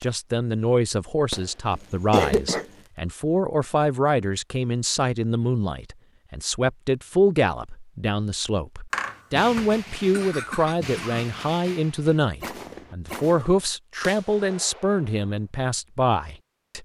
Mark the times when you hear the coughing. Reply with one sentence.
You can hear the coughing from 1.7 to 2.6 s and from 8.9 to 11.2 s.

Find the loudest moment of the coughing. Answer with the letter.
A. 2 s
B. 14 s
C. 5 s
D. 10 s
A.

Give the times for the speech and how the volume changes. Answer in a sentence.
The speech can be heard from 0.0 to 16.8 s, at a steady volume.